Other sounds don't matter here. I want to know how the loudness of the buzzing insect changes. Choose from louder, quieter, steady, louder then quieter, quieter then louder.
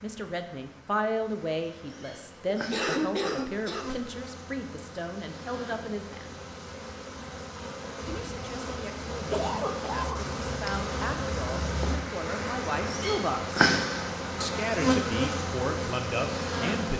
louder.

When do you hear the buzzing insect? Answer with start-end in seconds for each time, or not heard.
0.0-16.9.